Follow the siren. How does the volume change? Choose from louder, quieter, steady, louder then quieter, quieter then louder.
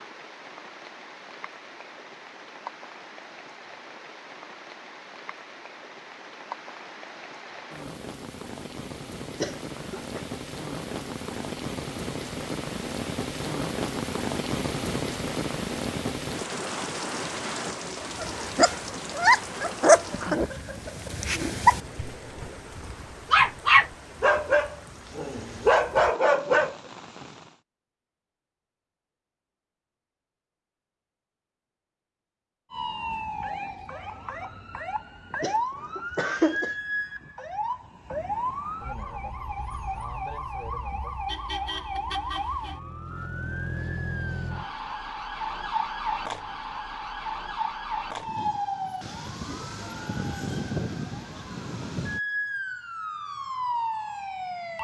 steady.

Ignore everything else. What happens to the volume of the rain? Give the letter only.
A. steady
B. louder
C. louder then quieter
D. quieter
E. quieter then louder
C.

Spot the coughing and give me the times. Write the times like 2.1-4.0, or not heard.
9.4-10.2, 35.4-36.7.